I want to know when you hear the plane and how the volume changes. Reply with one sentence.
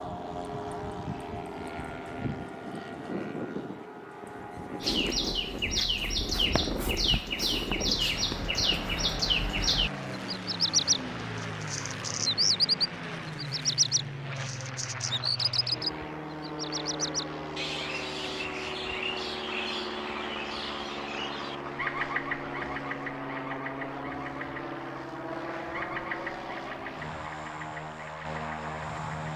The plane can be heard from 0.0 to 29.3 s, at a steady volume.